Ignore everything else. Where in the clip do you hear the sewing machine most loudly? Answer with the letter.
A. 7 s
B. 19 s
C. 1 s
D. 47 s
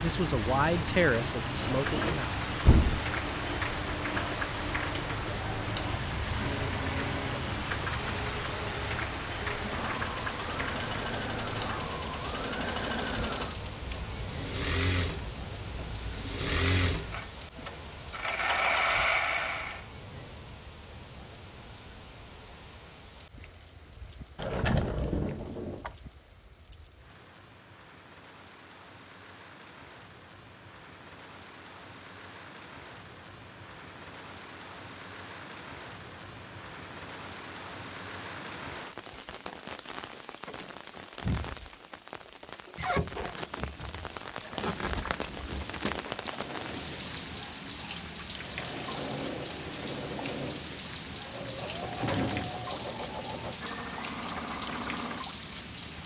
B.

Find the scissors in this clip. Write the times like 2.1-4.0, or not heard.
not heard.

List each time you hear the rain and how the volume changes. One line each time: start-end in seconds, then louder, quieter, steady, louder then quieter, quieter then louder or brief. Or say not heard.
0.0-56.0 quieter then louder.